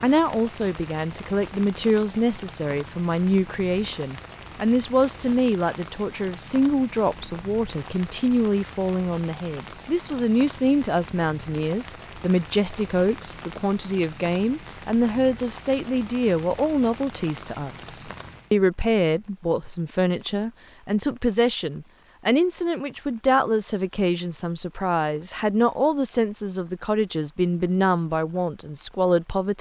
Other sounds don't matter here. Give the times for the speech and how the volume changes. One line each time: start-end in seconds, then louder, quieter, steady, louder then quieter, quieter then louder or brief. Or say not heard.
0.0-29.5 steady.